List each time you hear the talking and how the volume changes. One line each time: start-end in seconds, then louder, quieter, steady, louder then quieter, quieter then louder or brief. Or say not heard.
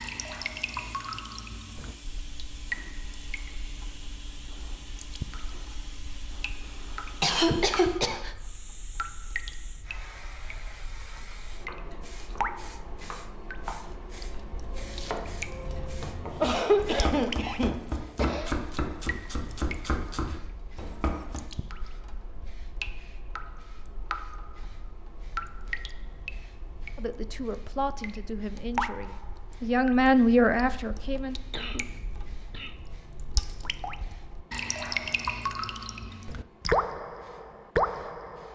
26.9-31.4 quieter then louder.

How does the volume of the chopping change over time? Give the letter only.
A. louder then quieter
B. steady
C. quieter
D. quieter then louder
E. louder
E.